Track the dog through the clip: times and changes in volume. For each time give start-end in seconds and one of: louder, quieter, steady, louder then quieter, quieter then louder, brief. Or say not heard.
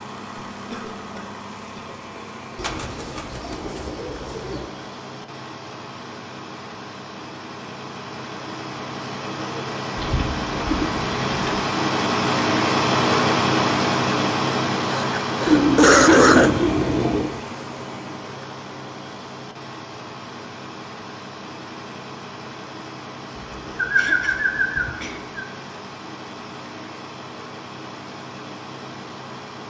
not heard.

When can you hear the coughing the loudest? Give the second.
16 s.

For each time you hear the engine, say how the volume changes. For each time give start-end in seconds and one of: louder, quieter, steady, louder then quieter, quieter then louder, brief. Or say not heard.
0.0-29.6 louder then quieter.